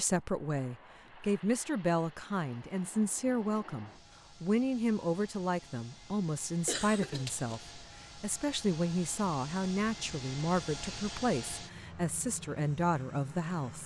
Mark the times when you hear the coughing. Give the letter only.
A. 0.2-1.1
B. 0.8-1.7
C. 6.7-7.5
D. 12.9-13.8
C.